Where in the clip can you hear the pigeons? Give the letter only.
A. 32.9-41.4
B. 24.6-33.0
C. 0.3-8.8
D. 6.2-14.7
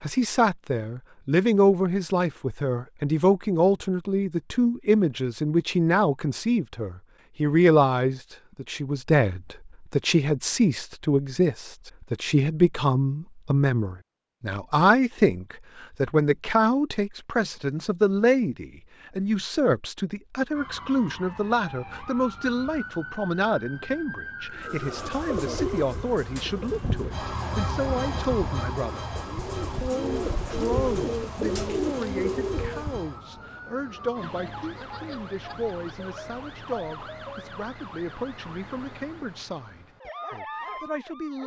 B.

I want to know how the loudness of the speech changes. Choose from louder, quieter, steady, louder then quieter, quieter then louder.
quieter.